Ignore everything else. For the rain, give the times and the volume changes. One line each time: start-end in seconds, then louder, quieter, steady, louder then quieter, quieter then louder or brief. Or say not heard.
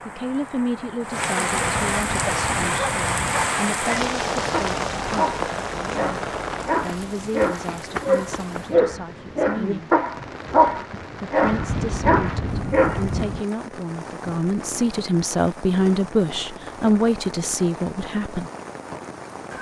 0.0-19.5 quieter.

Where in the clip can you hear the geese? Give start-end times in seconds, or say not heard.
1.5-3.5, 11.4-13.4.